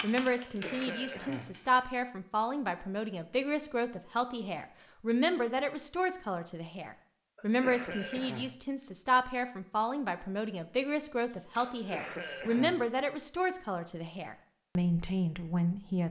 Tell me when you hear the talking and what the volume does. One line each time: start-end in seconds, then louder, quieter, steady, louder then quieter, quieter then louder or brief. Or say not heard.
0.0-16.0 steady.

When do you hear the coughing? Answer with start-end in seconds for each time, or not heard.
0.3-1.6, 7.3-8.6, 11.7-12.8.